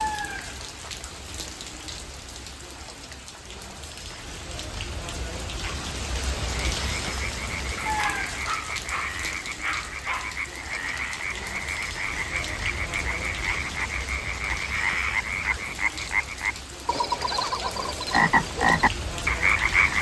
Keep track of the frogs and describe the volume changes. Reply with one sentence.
The volume of the frogs goes up.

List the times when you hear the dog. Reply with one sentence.
The dog can be heard from 7.8 to 10.3 s.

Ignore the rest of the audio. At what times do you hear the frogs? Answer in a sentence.
The frogs can be heard from 6.8 to 19.9 s.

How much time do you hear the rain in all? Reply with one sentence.
The rain can be heard for 20 seconds in total.